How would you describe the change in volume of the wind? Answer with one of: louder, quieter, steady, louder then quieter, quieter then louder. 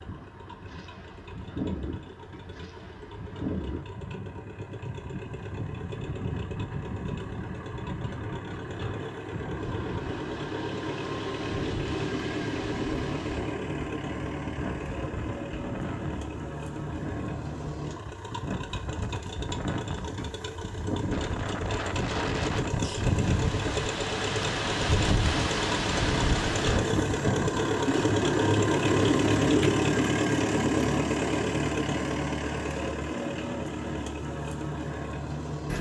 louder.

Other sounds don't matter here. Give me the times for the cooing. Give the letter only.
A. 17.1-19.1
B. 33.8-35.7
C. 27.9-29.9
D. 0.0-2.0
C.